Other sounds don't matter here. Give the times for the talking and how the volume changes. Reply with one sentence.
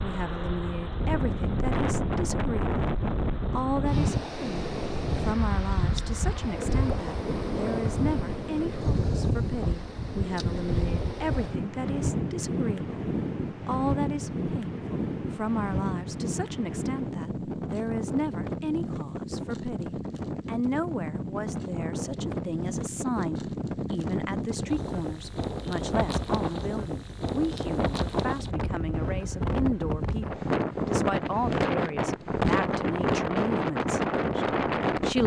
The talking can be heard from 0.0 to 35.2 s, at a steady volume.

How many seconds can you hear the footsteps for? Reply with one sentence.
The footsteps can't be heard in this clip.